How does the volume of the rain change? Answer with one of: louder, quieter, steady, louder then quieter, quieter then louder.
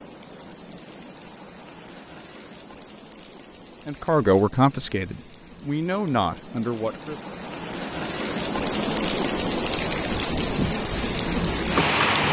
louder.